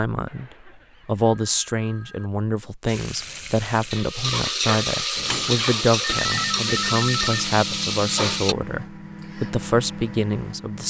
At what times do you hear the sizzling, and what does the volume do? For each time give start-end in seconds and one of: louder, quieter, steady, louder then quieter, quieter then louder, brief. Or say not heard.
2.9-8.6 louder.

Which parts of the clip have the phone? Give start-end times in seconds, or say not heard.
0.2-2.3, 5.9-7.4.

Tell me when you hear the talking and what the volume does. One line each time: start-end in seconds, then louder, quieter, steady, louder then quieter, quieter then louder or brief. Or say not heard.
0.0-10.8 steady.